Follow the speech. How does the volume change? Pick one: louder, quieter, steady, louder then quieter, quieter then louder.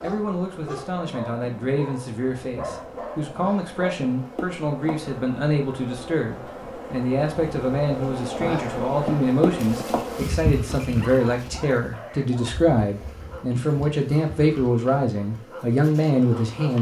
louder.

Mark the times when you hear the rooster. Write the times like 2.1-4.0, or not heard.
not heard.